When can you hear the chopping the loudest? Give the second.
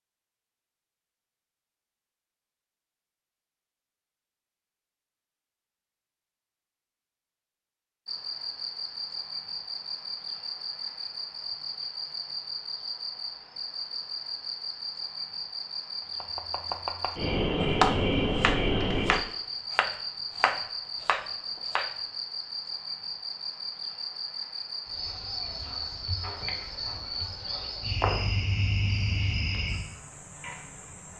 18 s.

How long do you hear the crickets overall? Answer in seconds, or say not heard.
23 s.